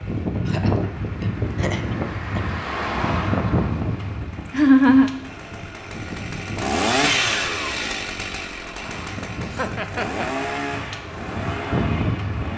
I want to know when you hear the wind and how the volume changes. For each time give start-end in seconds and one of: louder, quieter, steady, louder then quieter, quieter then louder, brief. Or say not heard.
0.0-12.5 quieter then louder.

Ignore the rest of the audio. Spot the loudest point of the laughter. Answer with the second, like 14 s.
5 s.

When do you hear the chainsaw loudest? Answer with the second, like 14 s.
7 s.